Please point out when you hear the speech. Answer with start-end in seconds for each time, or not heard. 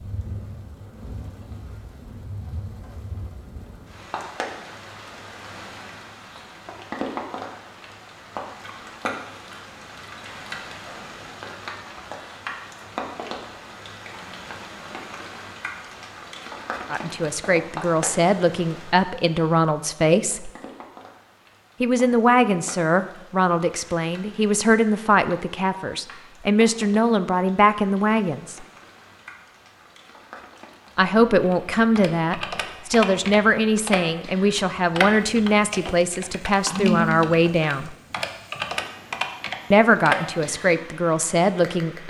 16.9-20.5, 21.8-28.6, 30.9-38.0, 39.7-42.0.